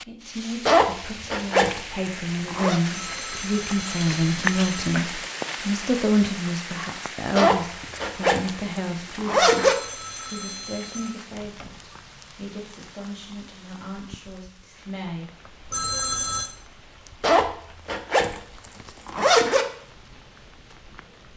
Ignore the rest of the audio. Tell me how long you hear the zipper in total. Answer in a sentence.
You can hear the zipper for 7 seconds altogether.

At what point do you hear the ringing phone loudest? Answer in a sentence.
The loudest moment of the ringing phone is at 16 seconds.